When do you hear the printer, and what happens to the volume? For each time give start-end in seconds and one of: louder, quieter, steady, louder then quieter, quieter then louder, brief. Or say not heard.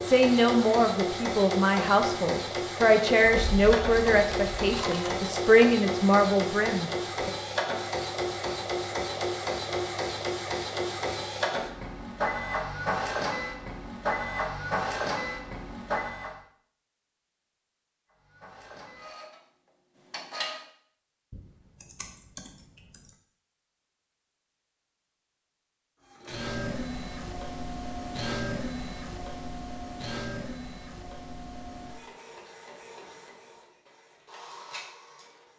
0.0-16.4 steady
18.1-20.6 brief
26.1-35.5 quieter.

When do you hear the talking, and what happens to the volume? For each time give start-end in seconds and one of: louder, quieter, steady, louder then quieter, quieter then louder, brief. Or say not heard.
0.0-7.3 steady.